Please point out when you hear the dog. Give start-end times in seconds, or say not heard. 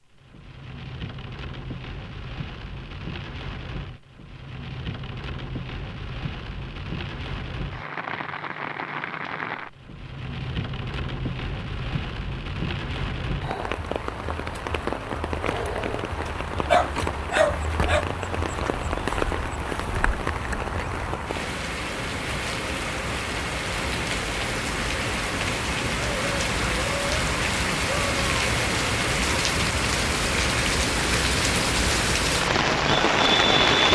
16.6-18.1.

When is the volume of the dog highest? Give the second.
17 s.